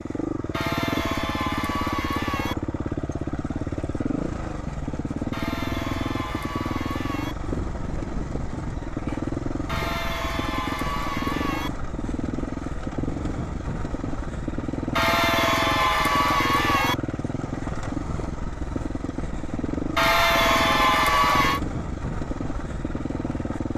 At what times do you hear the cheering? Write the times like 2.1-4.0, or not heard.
0.5-2.5, 5.3-7.3, 9.7-11.7, 14.9-16.9, 19.9-21.6.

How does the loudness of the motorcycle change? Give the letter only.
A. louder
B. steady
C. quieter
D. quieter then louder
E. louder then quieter
B.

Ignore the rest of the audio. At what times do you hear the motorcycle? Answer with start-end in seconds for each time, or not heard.
0.0-23.7.